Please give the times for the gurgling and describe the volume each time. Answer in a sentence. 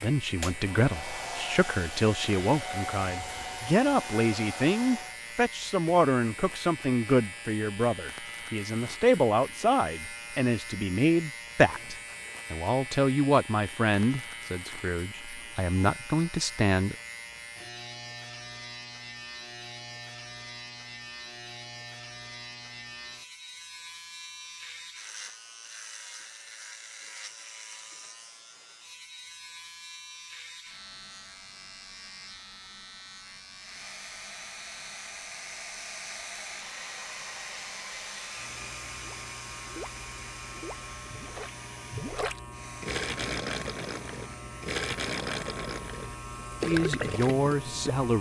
The gurgling can be heard from 39.0 to 47.8 s, getting louder.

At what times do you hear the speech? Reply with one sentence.
You can hear the speech from 0.0 to 16.9 s and from 46.6 to 48.1 s.